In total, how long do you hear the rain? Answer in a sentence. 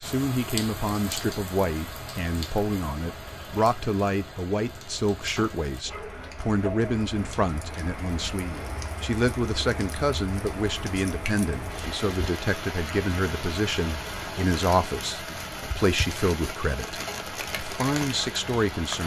The rain can be heard for 19 seconds in total.